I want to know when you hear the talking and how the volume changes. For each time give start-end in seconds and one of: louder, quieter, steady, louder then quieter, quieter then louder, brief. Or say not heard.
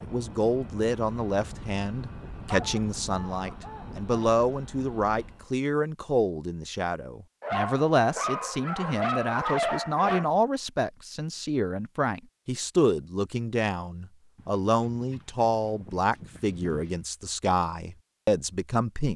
0.0-19.1 steady.